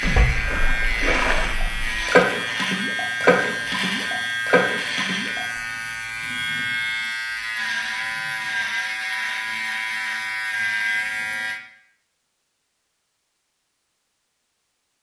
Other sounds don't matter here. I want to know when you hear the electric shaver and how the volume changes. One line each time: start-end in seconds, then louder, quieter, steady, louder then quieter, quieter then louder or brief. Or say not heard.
0.0-11.6 steady.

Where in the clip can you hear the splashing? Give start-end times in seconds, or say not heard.
0.0-5.4.